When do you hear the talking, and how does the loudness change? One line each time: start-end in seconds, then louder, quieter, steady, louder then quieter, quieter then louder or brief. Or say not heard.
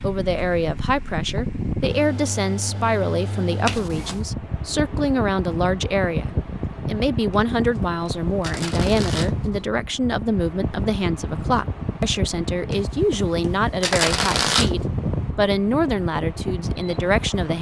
0.0-17.5 steady.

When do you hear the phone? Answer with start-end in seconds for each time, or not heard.
not heard.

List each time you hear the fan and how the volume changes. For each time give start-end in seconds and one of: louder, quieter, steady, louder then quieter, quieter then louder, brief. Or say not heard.
0.0-17.5 steady.